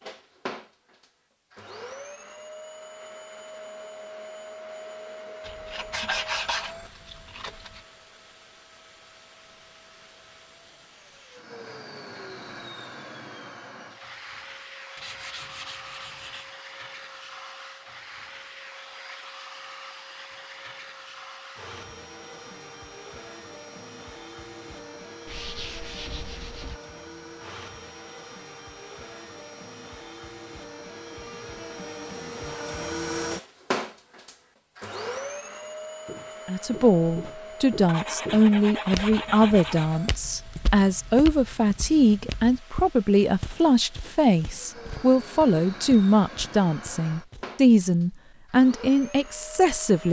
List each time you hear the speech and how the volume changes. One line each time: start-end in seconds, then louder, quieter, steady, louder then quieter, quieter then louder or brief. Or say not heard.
36.5-50.0 steady.